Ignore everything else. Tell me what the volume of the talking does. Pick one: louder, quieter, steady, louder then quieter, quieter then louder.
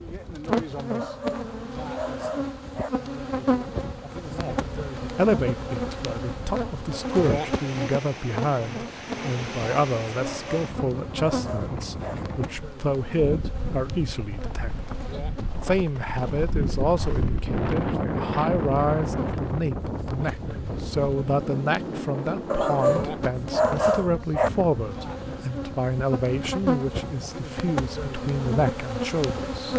steady.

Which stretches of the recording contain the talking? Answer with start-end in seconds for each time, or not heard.
4.3-29.7.